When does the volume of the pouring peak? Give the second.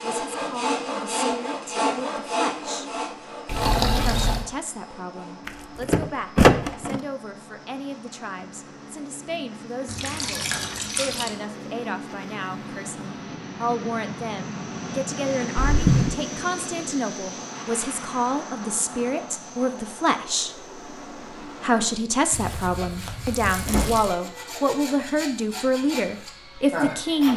4 s.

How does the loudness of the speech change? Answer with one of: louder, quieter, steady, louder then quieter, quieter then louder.
louder.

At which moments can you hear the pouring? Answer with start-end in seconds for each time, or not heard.
3.5-4.5, 9.8-11.3, 22.3-24.1.